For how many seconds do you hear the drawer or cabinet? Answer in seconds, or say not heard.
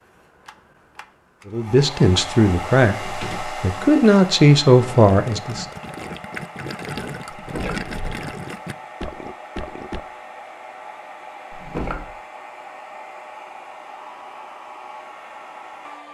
2 s.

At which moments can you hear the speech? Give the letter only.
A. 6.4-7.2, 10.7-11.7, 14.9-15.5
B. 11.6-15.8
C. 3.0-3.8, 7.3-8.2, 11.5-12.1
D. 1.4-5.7
D.